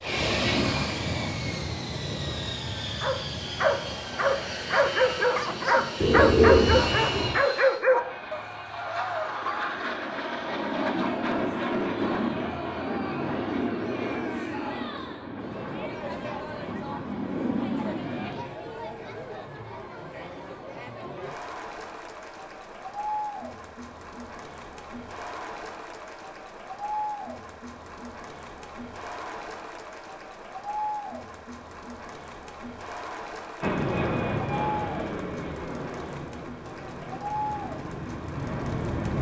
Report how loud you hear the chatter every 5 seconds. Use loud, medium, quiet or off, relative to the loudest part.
off, loud, loud, loud, loud, loud, loud, loud.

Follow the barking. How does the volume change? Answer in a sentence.
The loudness of the barking goes down.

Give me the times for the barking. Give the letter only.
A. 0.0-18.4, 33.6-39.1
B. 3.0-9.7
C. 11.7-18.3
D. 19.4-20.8
B.